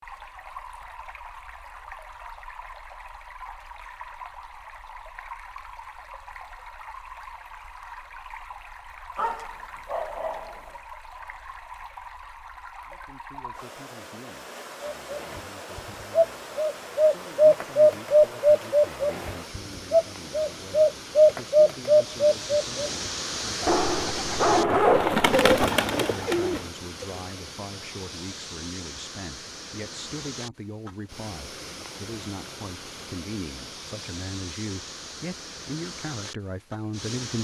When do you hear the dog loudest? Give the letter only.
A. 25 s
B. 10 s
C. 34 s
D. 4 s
A.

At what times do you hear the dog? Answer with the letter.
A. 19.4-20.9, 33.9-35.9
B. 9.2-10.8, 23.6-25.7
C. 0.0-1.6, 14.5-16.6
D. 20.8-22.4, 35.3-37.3
B.